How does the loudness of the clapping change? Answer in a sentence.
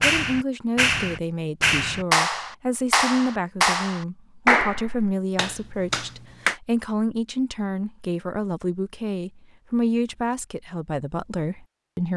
The volume of the clapping goes down.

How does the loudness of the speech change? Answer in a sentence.
The loudness of the speech stays about the same.